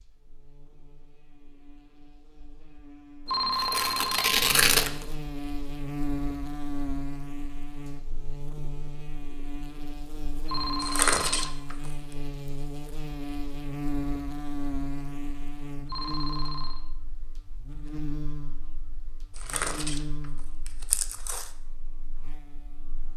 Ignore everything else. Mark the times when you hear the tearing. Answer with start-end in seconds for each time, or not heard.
3.5-5.0, 10.8-11.9, 19.4-20.0, 20.6-21.5.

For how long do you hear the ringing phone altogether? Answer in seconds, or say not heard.
4 s.